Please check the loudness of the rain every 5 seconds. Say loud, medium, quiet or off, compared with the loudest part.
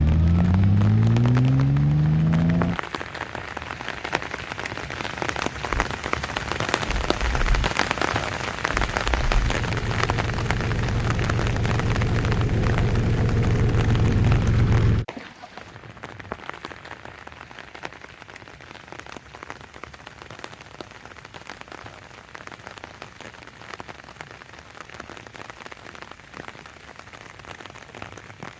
medium, loud, medium, quiet, quiet, quiet.